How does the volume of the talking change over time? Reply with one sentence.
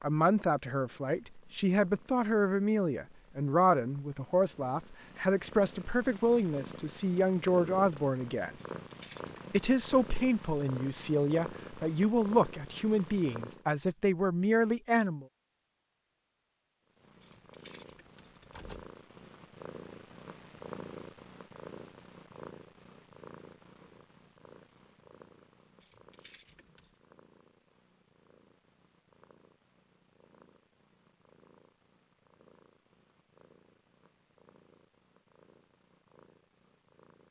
The volume of the talking stays about the same.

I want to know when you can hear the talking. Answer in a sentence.
You can hear the talking from 0.0 to 8.6 s and from 9.5 to 15.2 s.